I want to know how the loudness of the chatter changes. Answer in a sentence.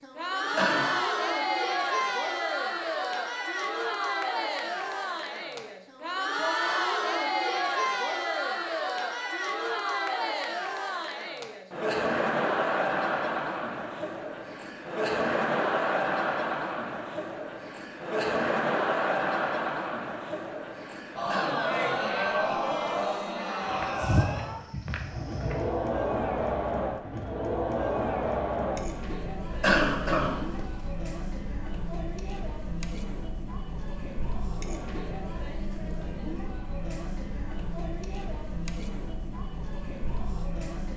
The loudness of the chatter goes down.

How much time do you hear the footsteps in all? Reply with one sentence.
You can hear the footsteps for 2 seconds altogether.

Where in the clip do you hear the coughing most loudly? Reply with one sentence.
The volume of the coughing peaks at 30 seconds.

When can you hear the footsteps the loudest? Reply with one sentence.
The volume of the footsteps peaks at 24 seconds.